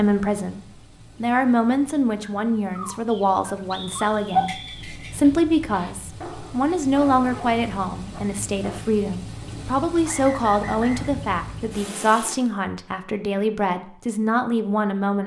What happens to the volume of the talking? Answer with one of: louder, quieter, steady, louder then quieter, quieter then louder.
steady.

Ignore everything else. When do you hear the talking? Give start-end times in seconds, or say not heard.
0.0-15.2.